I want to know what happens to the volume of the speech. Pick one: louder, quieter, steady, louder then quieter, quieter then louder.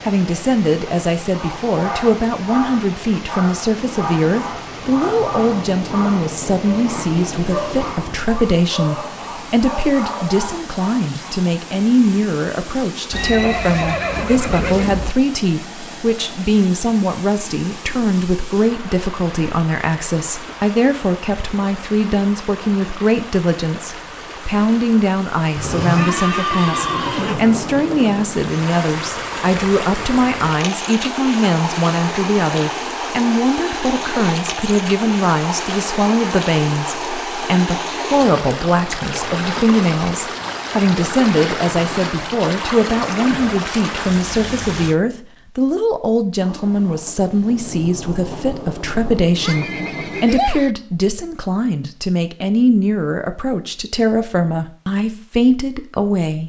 steady.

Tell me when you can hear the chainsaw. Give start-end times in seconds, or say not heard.
not heard.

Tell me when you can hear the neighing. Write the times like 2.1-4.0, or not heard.
13.1-15.2, 25.6-27.4, 49.4-50.7.